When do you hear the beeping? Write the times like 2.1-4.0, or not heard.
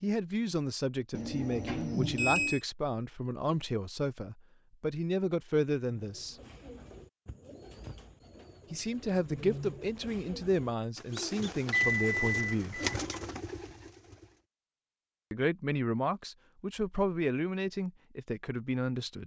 1.1-2.6, 11.7-13.2.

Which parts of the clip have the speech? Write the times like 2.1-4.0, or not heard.
0.0-6.3, 8.7-12.8, 15.3-19.2.